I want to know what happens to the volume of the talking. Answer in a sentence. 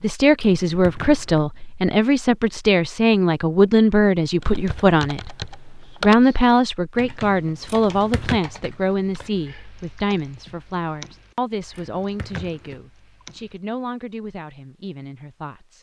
The volume of the talking goes down.